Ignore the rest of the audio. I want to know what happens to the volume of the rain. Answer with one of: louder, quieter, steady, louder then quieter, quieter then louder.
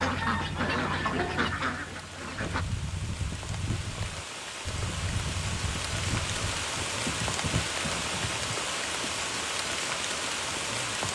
louder.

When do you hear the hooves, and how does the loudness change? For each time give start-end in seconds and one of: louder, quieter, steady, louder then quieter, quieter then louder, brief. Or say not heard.
2.4-8.6 steady.